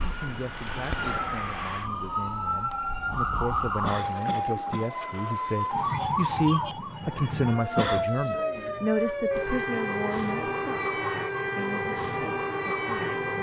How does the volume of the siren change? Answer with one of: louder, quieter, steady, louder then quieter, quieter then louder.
steady.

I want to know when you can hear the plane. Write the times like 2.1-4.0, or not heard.
0.0-1.9.